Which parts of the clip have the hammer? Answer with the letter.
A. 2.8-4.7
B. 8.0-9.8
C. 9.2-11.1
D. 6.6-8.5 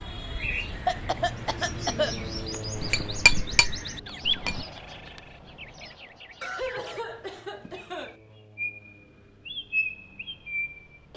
A.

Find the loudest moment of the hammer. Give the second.
3 s.